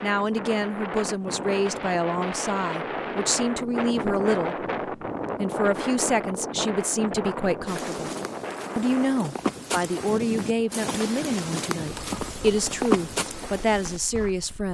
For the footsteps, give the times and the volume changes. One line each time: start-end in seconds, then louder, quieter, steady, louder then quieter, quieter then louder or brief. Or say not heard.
7.7-14.3 louder.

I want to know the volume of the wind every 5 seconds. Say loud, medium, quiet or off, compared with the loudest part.
loud, loud, medium.